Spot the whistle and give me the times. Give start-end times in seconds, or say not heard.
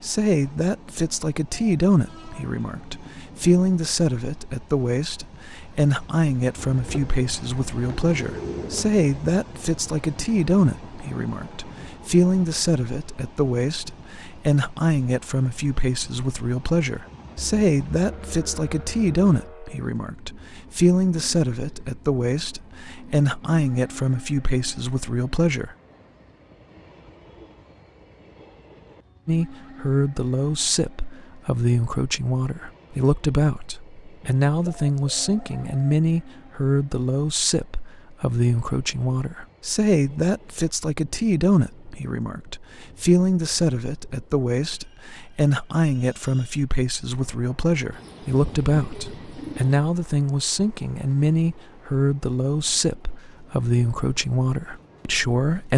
not heard.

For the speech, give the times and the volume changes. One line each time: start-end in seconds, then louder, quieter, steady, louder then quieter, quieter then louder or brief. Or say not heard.
0.0-25.8 steady
29.2-55.7 steady.